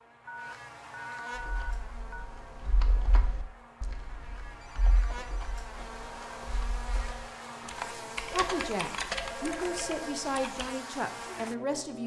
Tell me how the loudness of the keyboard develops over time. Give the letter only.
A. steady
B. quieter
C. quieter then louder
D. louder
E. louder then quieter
E.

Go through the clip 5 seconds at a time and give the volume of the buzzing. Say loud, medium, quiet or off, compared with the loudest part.
medium, loud, loud.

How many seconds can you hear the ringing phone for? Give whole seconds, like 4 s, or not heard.
6 s.